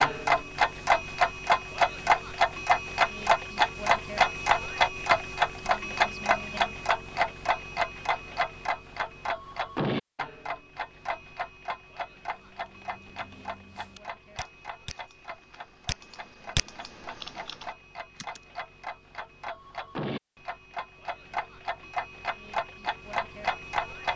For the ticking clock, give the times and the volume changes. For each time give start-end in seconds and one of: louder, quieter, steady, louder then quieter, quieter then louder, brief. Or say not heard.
0.0-24.1 quieter then louder.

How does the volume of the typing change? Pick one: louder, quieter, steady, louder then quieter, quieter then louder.
louder then quieter.